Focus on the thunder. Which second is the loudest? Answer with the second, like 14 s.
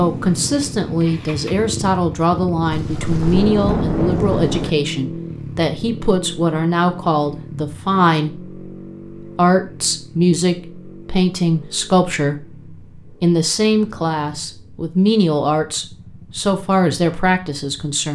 4 s.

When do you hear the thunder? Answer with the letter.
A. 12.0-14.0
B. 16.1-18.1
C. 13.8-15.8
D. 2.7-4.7
D.